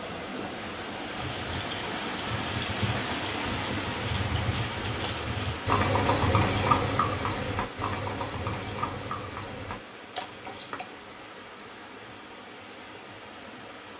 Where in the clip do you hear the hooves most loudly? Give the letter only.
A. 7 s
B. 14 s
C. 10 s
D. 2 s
A.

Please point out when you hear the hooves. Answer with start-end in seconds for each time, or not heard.
1.1-10.8.